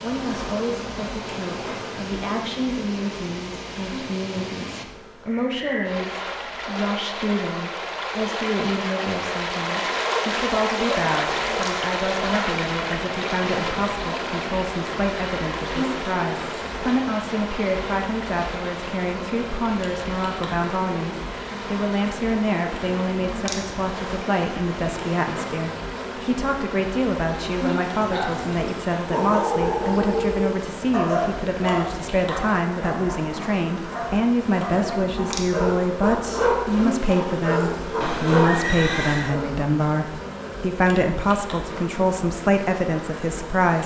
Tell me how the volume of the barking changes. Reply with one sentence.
The volume of the barking goes down, then up.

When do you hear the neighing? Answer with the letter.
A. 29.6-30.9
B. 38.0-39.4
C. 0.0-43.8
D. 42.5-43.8
B.